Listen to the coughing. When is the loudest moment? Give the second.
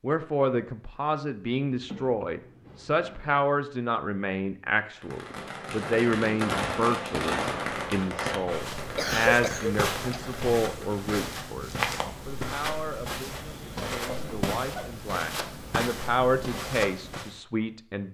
9 s.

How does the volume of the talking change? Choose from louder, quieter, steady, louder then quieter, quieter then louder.
quieter then louder.